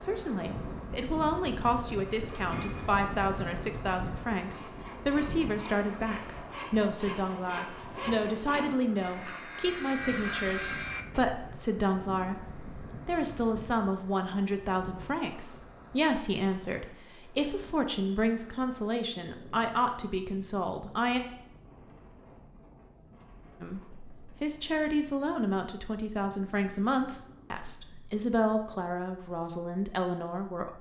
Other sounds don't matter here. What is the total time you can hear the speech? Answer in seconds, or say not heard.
28 s.